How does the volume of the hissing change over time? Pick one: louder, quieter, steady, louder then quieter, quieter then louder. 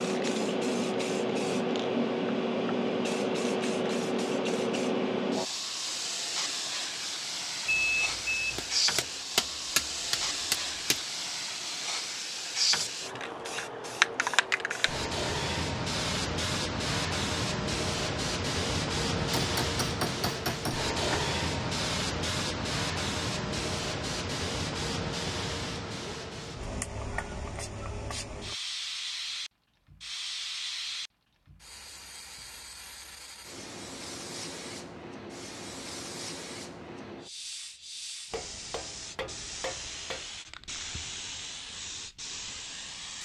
quieter.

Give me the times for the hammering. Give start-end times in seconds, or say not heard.
8.6-11.0, 19.1-21.2, 38.3-40.3.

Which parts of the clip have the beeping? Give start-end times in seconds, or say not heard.
7.7-8.7.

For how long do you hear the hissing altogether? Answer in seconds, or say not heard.
43 s.